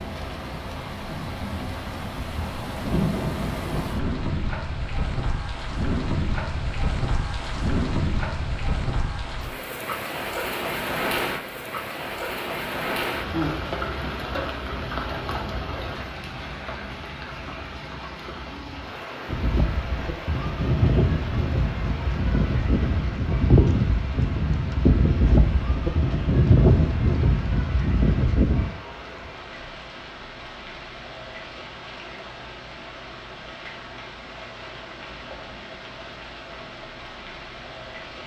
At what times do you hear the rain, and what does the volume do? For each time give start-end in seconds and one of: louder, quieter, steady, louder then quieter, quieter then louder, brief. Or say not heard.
0.0-38.2 quieter.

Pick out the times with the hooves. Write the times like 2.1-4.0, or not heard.
19.2-28.7.